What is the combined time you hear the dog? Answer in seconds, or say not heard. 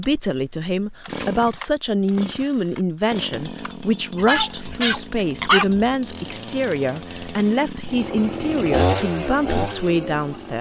2 s.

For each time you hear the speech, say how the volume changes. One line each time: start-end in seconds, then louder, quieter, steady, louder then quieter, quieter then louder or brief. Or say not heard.
0.0-10.5 steady.